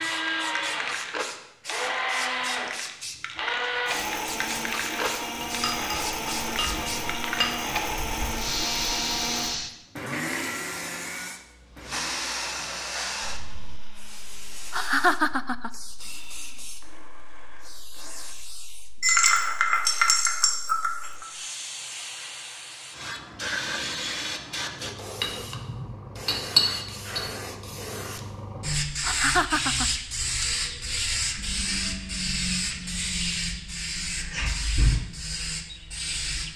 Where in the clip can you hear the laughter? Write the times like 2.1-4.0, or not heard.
14.7-15.7, 29.0-29.9.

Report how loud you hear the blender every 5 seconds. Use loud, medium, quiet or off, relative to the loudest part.
loud, loud, medium, quiet, off, off, off, off.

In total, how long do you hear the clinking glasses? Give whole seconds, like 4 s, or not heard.
7 s.